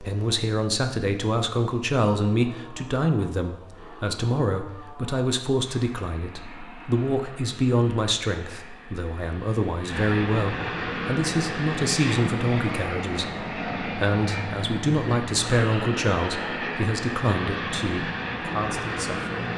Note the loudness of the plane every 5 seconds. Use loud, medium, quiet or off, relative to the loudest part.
quiet, quiet, loud, loud.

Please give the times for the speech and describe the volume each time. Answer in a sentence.
The speech can be heard from 0.0 to 19.5 s, at a steady volume.